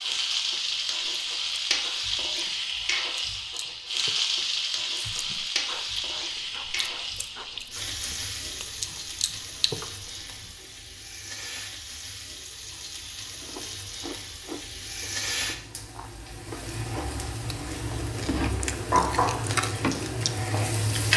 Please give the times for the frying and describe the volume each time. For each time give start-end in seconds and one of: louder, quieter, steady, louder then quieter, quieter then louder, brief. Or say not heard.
0.0-21.1 quieter then louder.